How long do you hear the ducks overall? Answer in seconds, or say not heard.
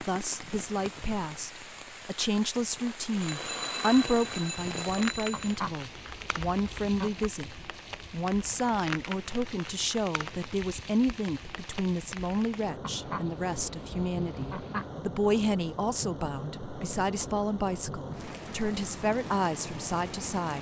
4 s.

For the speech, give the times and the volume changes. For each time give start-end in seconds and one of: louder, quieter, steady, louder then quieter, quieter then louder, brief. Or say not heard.
0.0-20.5 steady.